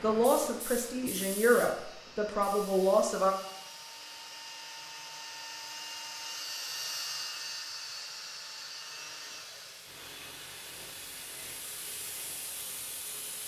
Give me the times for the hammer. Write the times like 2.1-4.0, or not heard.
not heard.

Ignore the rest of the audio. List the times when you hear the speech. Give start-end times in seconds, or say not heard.
0.0-3.4.